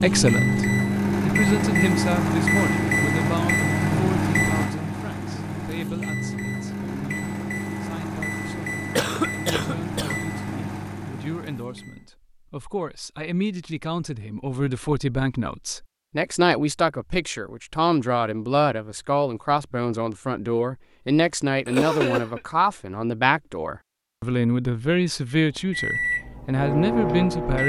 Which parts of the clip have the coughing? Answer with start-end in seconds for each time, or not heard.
8.9-10.2, 21.6-22.4.